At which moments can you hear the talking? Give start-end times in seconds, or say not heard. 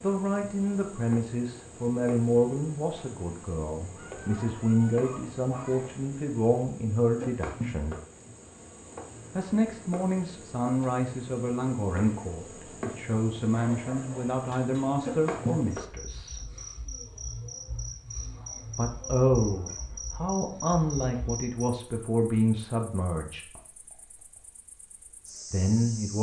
0.0-8.0, 9.3-16.5, 18.8-23.5, 25.5-26.1.